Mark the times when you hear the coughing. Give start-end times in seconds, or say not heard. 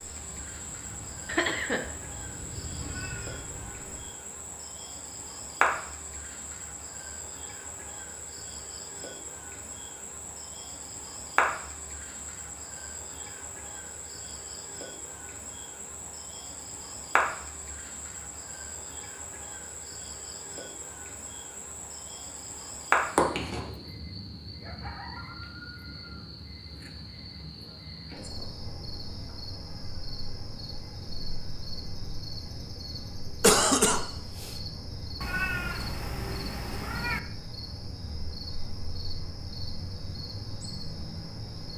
1.2-1.9, 33.4-34.5.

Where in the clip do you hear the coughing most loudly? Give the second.
34 s.